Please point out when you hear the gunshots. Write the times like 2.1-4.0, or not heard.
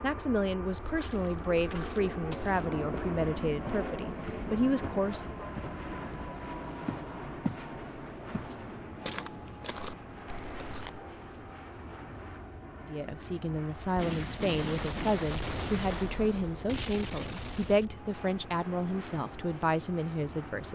13.9-17.9.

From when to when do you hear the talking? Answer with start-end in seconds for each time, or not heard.
0.0-5.5, 12.8-20.7.